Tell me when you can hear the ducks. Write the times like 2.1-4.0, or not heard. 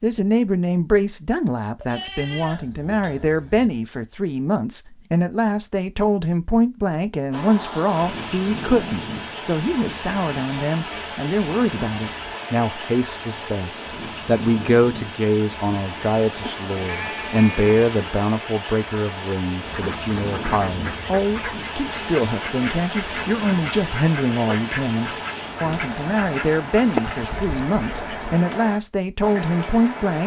19.6-28.4.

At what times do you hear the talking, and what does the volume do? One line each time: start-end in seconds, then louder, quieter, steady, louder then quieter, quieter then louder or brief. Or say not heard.
0.0-30.2 steady.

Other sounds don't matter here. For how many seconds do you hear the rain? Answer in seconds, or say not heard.
23 s.